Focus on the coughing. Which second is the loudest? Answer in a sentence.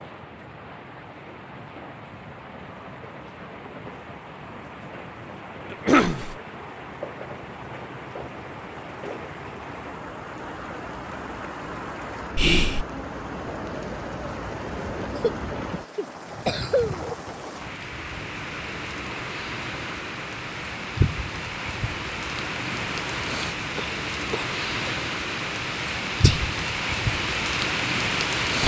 The loudest moment of the coughing is at 6 seconds.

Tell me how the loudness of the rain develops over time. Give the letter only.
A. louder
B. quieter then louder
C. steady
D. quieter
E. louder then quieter
A.